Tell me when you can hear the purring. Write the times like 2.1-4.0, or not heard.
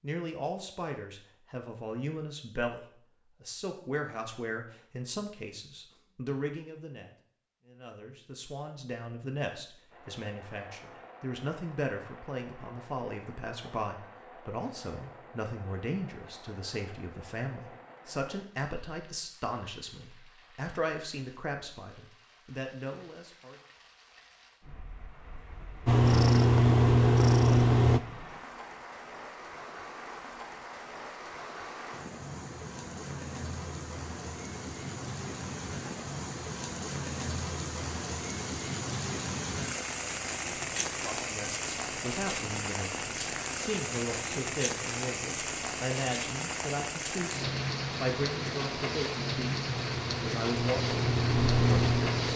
25.9-28.0, 49.6-52.3.